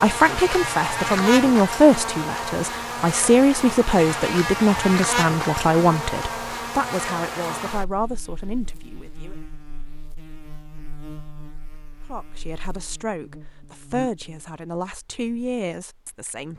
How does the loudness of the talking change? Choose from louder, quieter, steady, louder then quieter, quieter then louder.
quieter.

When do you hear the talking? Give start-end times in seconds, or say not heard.
0.0-9.3, 12.1-16.5.